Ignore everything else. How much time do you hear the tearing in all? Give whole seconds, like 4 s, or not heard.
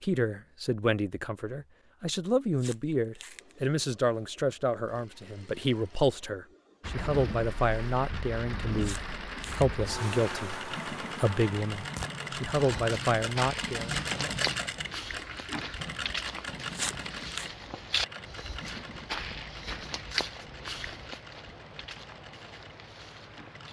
3 s.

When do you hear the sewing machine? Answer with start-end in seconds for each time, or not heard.
3.2-23.6.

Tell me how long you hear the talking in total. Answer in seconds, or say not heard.
14 s.